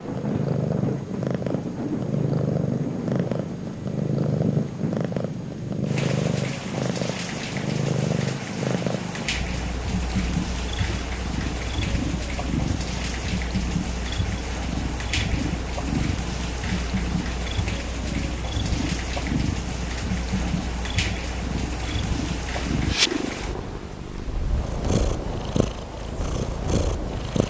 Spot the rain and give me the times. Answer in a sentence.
You can hear the rain from 0.0 to 27.4 s.